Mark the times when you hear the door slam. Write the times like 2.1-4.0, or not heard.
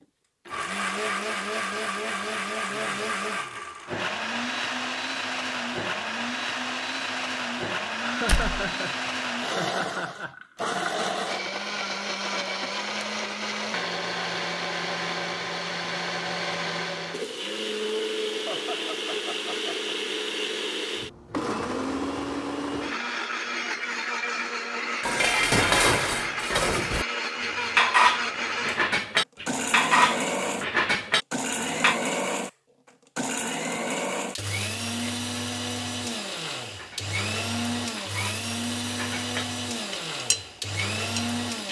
8.2-8.7.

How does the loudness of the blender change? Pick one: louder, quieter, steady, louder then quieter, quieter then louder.
steady.